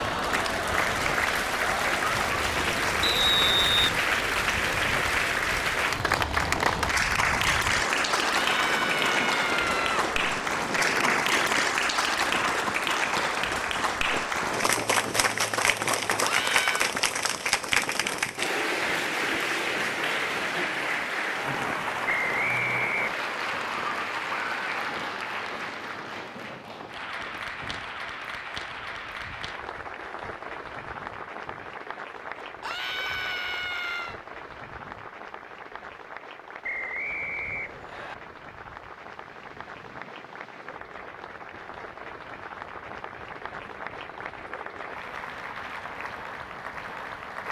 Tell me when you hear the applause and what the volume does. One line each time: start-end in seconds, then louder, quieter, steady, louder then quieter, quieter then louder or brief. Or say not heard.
0.0-47.4 quieter.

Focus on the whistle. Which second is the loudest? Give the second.
3 s.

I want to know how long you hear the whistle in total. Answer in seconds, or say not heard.
3 s.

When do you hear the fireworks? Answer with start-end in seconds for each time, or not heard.
not heard.